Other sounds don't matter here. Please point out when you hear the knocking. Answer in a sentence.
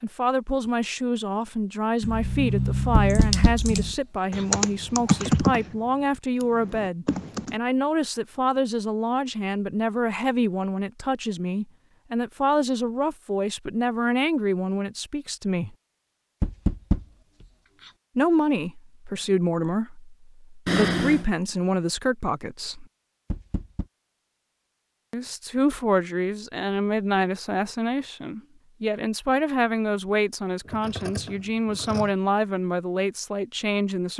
You can hear the knocking from 3.0 to 4.4 s, from 16.4 to 17.9 s and from 23.3 to 23.9 s.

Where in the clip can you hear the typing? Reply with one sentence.
You can hear the typing from 2.0 to 7.5 s.